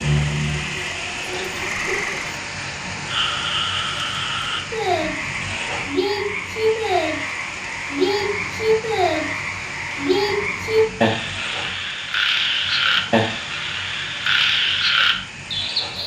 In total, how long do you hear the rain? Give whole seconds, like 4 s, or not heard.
16 s.